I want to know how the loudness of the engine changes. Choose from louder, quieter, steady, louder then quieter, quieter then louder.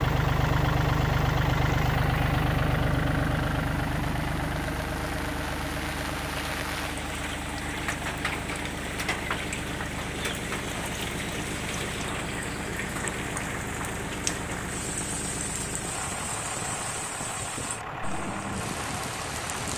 quieter.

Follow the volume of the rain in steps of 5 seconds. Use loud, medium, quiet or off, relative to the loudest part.
medium, loud, loud, loud.